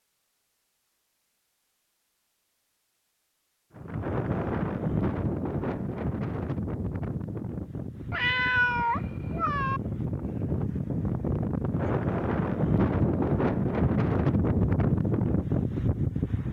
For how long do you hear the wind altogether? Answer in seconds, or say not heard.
13 s.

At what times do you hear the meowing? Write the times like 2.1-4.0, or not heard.
8.1-9.8.